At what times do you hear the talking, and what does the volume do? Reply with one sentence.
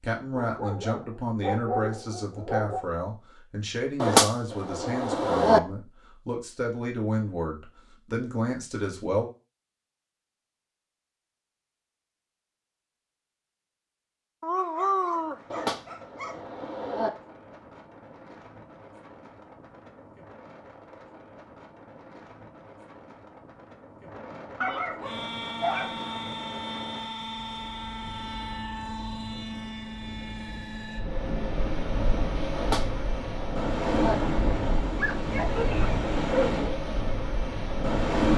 You can hear the talking from 0.0 to 9.2 s, at a steady volume.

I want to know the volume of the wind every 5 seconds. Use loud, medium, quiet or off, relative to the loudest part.
off, off, off, quiet, quiet, quiet, loud, loud.